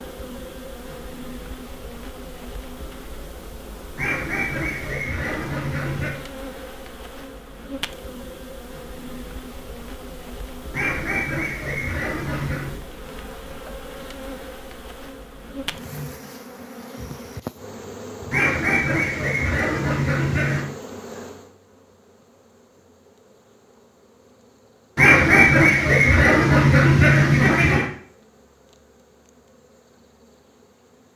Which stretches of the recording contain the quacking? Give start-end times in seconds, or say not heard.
4.0-6.2, 10.7-12.8, 18.3-20.6, 24.9-27.9.